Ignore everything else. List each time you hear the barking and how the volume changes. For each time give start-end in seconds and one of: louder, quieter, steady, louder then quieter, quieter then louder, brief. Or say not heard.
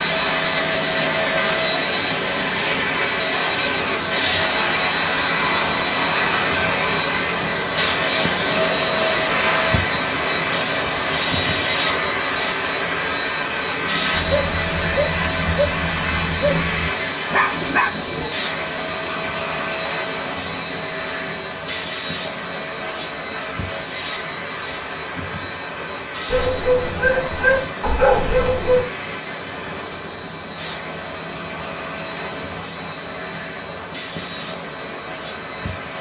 14.1-18.3 louder
26.3-28.9 brief.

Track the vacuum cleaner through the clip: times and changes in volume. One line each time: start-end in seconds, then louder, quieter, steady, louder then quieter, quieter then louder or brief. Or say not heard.
0.0-35.9 quieter.